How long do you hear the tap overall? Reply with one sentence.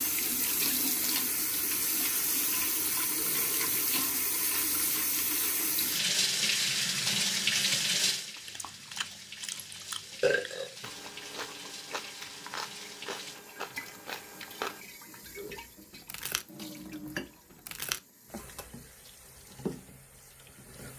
The tap can be heard for 21 seconds in total.